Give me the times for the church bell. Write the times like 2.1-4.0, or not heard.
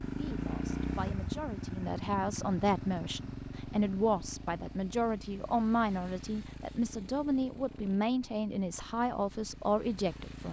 not heard.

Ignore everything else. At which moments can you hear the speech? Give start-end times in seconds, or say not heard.
0.0-10.4.